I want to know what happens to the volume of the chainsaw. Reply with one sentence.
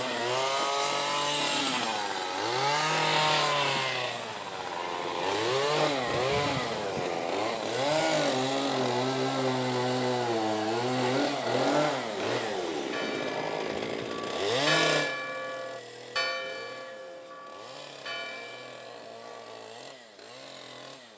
The volume of the chainsaw goes down.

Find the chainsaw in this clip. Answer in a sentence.
You can hear the chainsaw from 0.0 to 21.1 s.